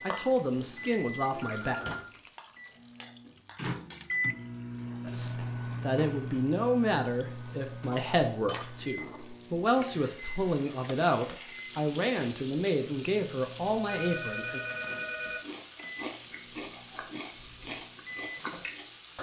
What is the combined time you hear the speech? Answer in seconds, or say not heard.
11 s.